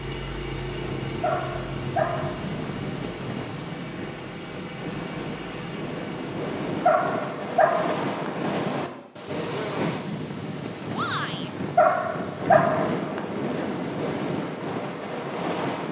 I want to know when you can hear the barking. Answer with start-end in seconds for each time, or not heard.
1.2-2.5, 6.8-8.3, 11.8-13.2.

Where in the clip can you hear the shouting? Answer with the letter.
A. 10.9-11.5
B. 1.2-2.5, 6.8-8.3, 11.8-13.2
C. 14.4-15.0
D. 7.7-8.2
A.